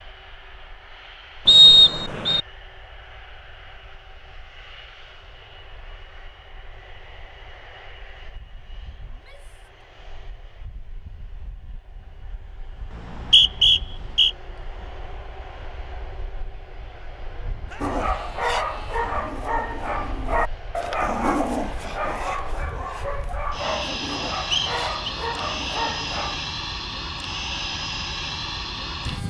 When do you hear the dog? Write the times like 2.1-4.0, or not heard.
17.8-26.4.